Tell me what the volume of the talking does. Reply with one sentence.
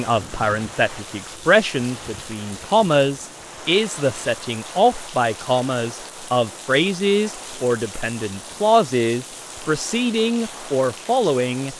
The loudness of the talking stays about the same.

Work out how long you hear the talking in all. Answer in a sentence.
The talking can be heard for 12 seconds in total.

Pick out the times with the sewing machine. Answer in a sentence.
The sewing machine can't be heard in this clip.